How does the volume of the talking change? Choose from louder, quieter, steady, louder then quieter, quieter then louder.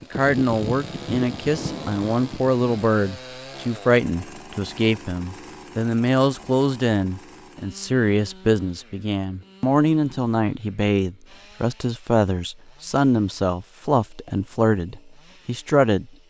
steady.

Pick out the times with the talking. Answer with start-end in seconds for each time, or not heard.
0.0-16.1.